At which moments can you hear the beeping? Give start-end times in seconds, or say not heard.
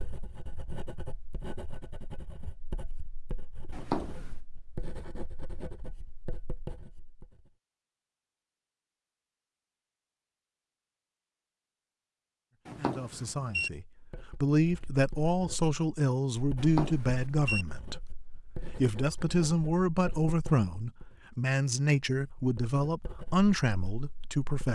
3.7-4.3, 12.7-13.7, 16.6-17.6.